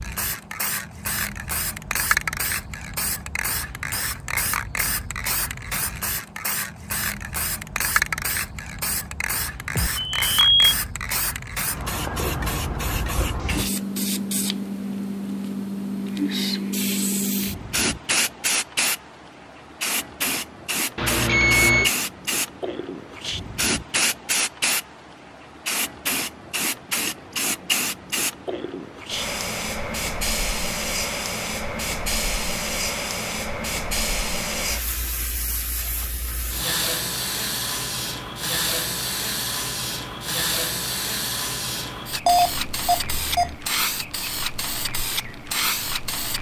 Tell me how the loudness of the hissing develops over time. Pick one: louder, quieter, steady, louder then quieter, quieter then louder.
steady.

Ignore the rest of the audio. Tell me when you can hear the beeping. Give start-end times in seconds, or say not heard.
9.8-10.8, 20.9-21.9, 42.2-43.5.